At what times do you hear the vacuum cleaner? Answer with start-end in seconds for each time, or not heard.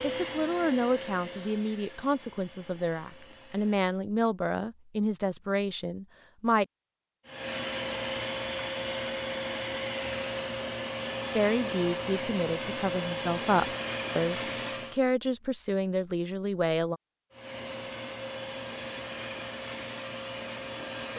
0.0-3.9, 7.2-15.0, 17.3-21.1.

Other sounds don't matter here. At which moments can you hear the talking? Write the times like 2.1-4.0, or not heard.
0.0-6.7, 11.3-17.0.